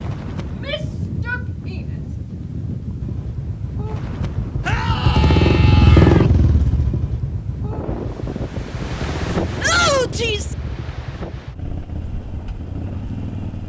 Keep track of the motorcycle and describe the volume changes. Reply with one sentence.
The loudness of the motorcycle goes up, then down.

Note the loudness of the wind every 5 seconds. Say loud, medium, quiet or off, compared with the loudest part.
loud, loud, medium.